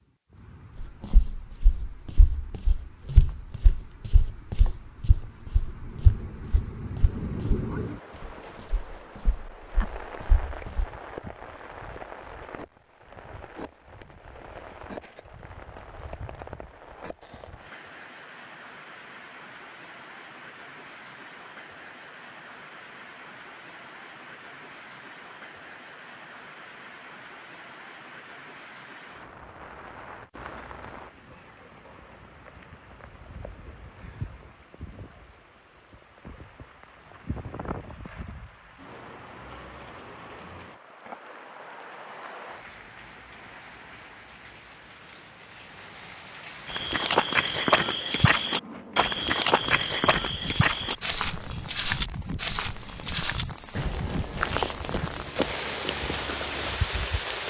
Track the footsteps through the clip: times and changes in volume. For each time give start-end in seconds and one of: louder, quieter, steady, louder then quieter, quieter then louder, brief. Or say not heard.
0.8-10.8 louder then quieter
46.6-56.8 quieter.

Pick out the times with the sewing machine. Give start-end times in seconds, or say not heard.
not heard.